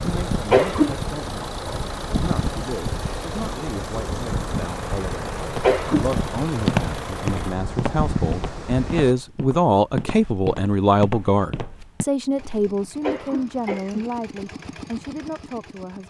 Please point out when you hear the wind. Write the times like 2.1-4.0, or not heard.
0.0-9.2.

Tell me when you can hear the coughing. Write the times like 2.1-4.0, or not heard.
0.5-1.0, 5.6-6.2, 13.0-14.1.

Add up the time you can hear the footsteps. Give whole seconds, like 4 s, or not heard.
7 s.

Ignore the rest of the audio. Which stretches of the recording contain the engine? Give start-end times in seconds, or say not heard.
0.0-7.5, 12.3-16.0.